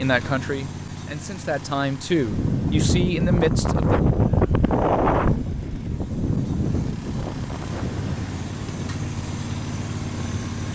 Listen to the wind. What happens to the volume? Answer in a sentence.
The volume of the wind goes down.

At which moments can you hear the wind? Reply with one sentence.
You can hear the wind from 2.1 to 10.7 s.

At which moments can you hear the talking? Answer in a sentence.
You can hear the talking from 0.0 to 4.0 s.